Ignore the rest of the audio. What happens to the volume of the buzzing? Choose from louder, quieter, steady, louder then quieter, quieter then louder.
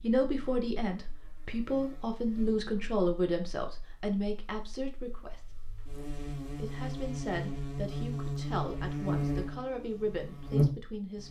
quieter then louder.